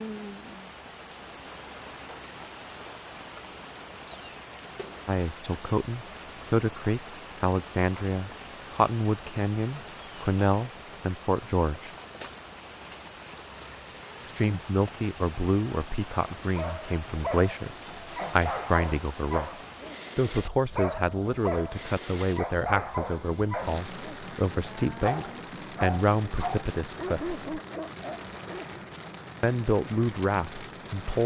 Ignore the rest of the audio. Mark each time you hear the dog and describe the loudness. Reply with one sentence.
The dog can be heard from 16.6 to 28.8 s, at a steady volume.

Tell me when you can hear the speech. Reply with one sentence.
The speech can be heard from 5.0 to 11.9 s, from 14.2 to 19.6 s, from 20.1 to 27.6 s and from 29.4 to 31.2 s.